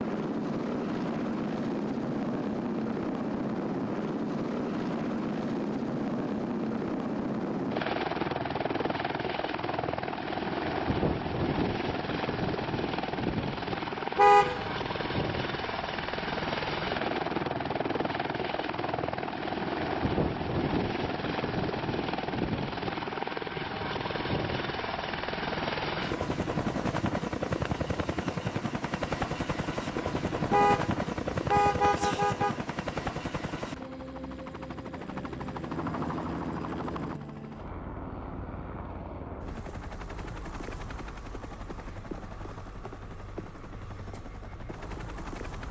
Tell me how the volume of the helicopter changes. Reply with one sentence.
The loudness of the helicopter goes down.